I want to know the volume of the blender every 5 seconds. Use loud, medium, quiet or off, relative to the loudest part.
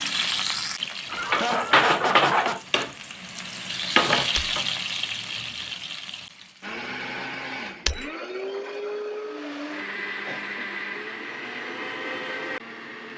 off, loud, loud.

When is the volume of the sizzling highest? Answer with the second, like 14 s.
2 s.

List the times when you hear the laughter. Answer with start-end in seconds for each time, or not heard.
1.1-2.6.